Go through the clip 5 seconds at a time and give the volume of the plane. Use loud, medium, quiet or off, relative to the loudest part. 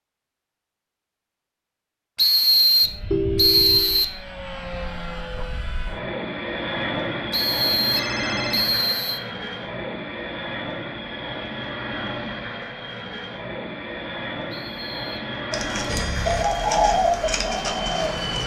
medium, loud, loud, loud.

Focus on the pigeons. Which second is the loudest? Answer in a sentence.
The loudest moment of the pigeons is at 17 seconds.